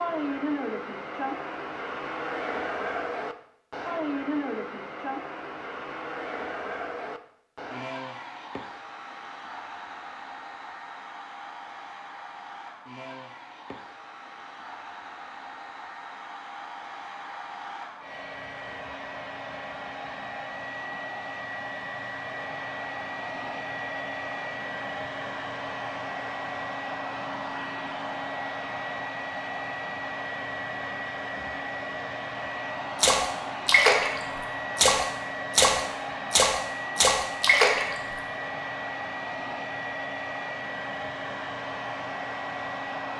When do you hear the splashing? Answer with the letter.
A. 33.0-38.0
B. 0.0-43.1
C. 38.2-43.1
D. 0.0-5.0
A.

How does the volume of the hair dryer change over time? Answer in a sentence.
The volume of the hair dryer goes down, then up.